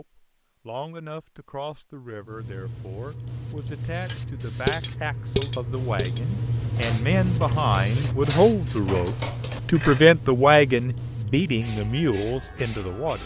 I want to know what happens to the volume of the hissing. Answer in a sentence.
The volume of the hissing goes up, then down.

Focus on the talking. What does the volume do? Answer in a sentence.
The volume of the talking goes up.